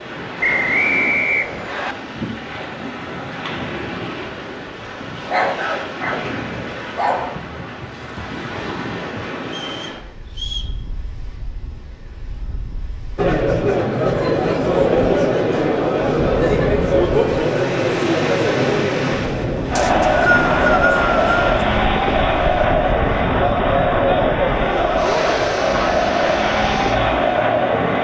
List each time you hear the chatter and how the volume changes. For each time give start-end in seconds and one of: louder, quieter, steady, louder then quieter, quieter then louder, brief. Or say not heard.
13.2-27.9 steady.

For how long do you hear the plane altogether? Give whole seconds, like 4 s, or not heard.
not heard.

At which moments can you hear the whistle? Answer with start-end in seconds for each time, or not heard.
0.4-1.9, 9.4-10.8, 19.8-21.4.